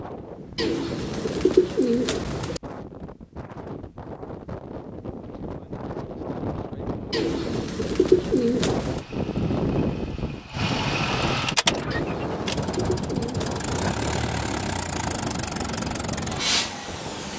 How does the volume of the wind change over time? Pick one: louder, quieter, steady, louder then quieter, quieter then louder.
louder then quieter.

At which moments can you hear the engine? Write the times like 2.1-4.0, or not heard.
8.8-17.3.